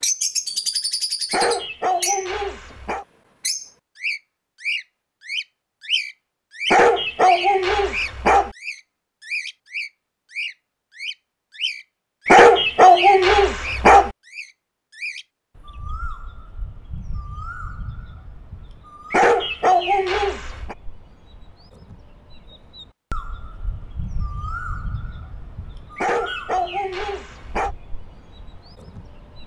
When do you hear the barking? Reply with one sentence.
You can hear the barking from 1.3 to 3.0 s, from 6.7 to 8.5 s, from 12.2 to 14.1 s, from 19.1 to 20.8 s and from 25.9 to 27.8 s.